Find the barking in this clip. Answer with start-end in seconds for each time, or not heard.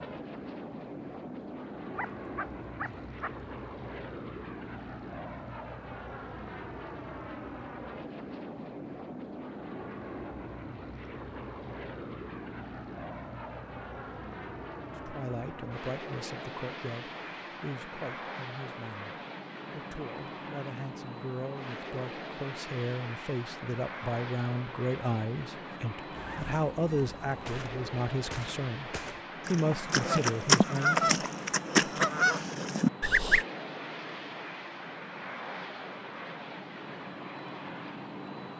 1.9-3.3.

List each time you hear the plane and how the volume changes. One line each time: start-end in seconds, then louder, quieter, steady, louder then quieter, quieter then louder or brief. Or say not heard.
0.0-38.5 steady.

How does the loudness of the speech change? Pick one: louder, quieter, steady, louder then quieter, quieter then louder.
louder.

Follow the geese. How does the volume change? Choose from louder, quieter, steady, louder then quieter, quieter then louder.
louder.